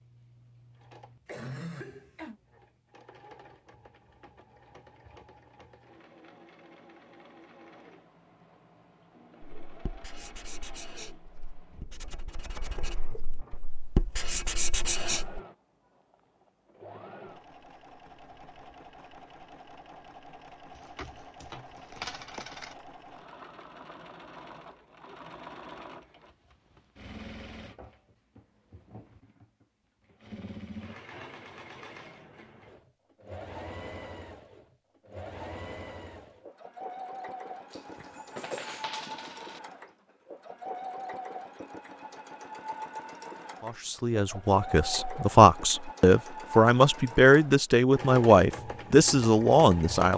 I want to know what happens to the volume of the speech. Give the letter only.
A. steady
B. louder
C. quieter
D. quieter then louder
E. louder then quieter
B.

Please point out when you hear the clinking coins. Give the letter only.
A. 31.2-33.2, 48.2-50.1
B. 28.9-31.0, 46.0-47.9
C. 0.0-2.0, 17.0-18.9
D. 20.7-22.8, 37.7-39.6
D.